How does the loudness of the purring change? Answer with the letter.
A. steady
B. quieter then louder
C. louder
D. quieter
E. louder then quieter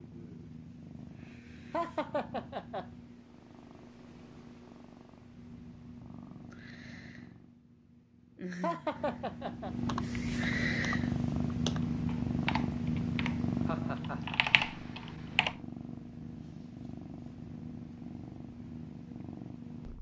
E.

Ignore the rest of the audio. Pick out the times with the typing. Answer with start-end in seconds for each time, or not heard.
9.8-15.6.